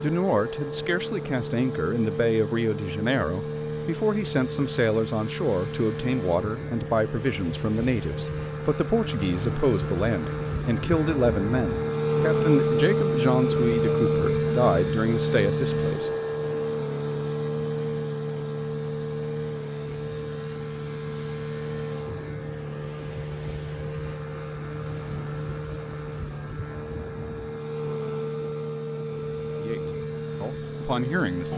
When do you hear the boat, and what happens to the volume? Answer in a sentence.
The boat can be heard from 0.0 to 31.5 s, getting louder then quieter.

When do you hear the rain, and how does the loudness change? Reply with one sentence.
You can't hear the rain here.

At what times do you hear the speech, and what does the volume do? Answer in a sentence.
You can hear the speech from 0.0 to 16.1 s, at a steady volume; and briefly from 29.6 to 31.5 s.